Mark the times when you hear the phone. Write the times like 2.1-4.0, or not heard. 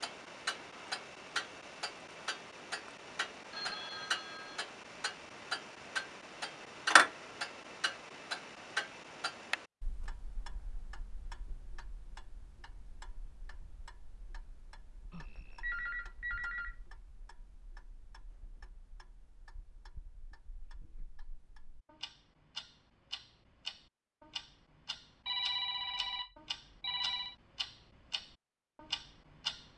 3.5-4.6, 15.1-16.8, 25.2-27.4.